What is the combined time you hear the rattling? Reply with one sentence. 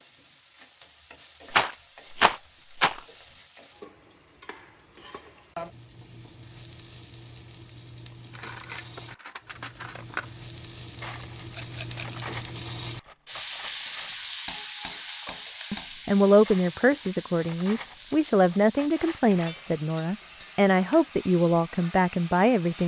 You can hear the rattling for 2 seconds altogether.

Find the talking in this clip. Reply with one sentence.
You can hear the talking from 15.7 to 22.8 s.